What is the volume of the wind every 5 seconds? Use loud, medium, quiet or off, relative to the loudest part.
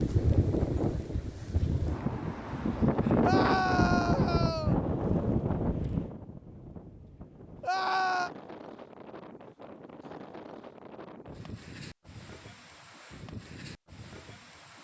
loud, medium, quiet.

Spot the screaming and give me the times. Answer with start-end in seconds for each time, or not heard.
3.2-4.8, 7.6-8.3.